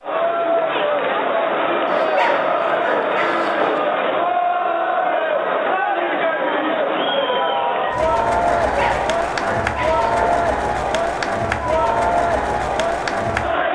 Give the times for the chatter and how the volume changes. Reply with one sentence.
You can hear the chatter from 0.0 to 13.7 s, at a steady volume.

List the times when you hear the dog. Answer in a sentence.
The dog can be heard from 1.9 to 3.8 s and from 8.6 to 10.2 s.